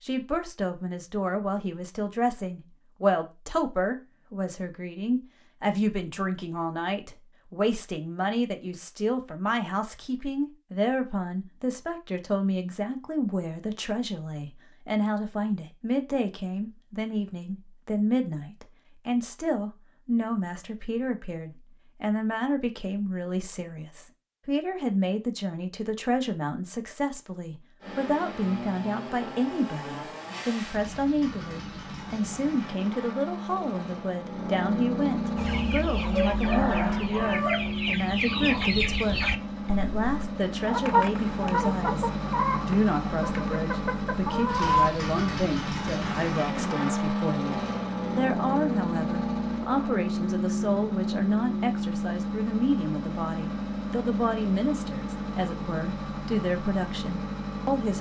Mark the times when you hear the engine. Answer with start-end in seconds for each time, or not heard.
27.8-57.9.